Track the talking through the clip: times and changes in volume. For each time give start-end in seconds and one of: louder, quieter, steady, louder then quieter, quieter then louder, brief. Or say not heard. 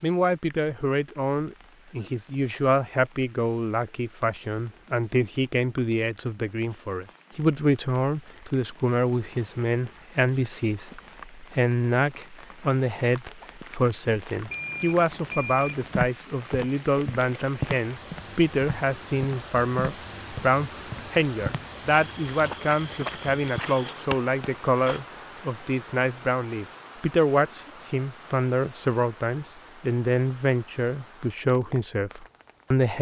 0.0-32.9 steady.